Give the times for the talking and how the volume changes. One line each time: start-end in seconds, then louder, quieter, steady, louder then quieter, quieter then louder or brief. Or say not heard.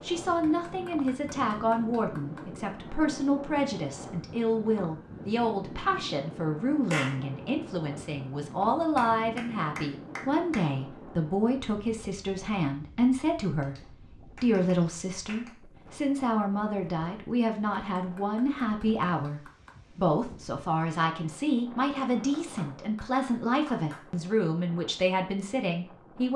0.0-26.3 steady.